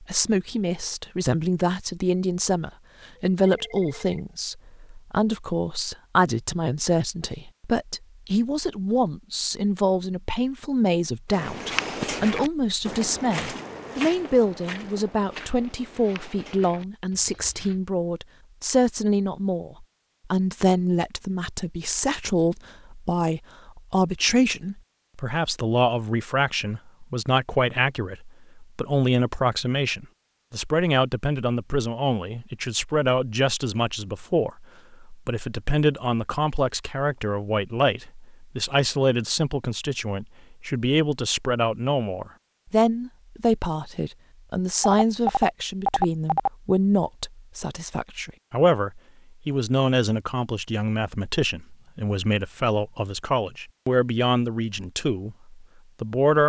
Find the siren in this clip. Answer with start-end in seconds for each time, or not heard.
not heard.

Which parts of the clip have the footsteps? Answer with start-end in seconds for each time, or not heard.
11.3-17.8.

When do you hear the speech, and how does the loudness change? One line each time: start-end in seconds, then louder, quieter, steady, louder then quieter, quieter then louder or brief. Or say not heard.
0.0-56.4 steady.